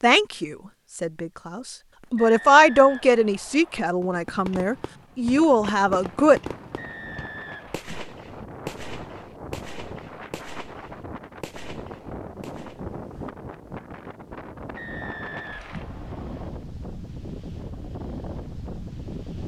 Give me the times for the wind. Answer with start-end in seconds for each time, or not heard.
5.2-19.4.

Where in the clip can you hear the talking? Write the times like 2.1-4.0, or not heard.
0.0-6.4.